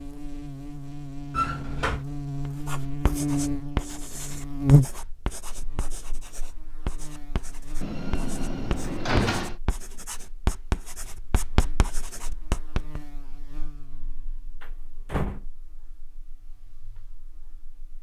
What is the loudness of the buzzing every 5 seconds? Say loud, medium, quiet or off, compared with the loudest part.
loud, quiet, quiet, quiet.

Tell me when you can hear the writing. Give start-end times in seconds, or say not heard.
2.5-13.1.